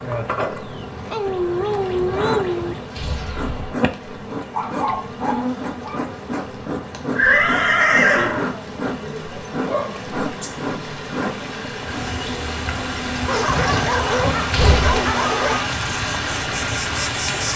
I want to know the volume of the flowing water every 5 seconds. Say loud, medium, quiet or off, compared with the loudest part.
quiet, quiet, medium, loud.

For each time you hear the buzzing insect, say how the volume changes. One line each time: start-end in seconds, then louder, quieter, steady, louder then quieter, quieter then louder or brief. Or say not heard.
0.0-17.5 steady.